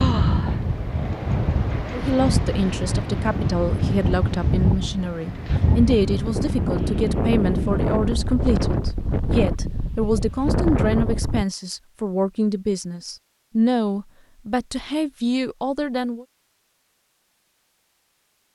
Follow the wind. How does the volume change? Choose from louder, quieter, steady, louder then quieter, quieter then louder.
steady.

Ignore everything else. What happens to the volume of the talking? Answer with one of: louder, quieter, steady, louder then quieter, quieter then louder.
steady.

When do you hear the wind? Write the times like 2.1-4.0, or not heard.
0.0-11.4.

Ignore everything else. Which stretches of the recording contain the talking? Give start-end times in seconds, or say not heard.
1.9-16.2.